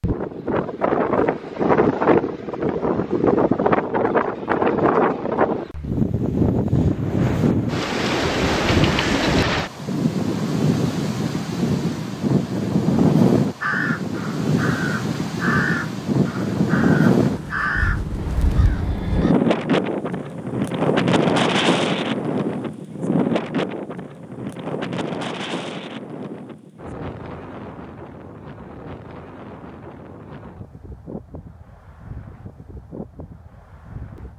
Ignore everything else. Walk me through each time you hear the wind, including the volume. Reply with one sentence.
You can hear the wind from 0.0 to 34.3 s, getting quieter.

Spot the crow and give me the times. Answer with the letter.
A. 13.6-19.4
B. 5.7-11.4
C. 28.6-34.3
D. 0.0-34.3
A.